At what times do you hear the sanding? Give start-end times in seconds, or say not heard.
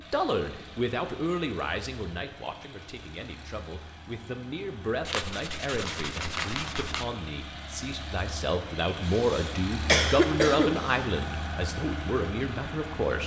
5.0-7.0.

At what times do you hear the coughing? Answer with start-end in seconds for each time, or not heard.
9.1-11.0.